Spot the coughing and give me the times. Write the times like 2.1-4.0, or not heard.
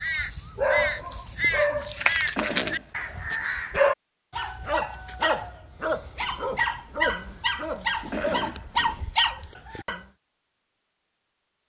2.4-2.9, 8.1-8.7.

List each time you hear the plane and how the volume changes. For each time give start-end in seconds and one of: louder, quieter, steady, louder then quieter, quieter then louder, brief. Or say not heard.
not heard.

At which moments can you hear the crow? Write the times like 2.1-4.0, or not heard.
0.0-3.9.